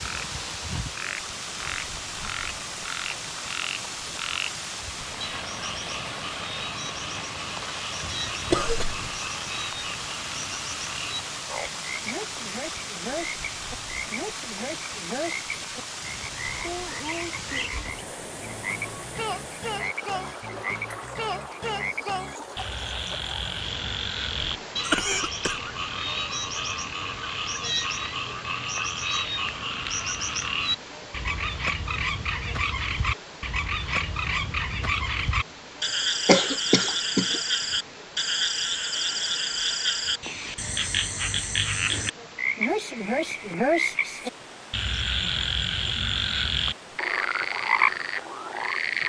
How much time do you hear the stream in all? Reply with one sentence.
You can hear the stream for 49 seconds altogether.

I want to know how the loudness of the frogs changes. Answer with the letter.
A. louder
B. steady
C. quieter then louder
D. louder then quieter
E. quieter
A.